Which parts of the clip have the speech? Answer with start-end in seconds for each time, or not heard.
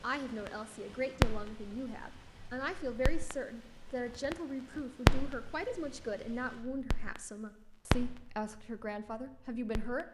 0.0-10.1.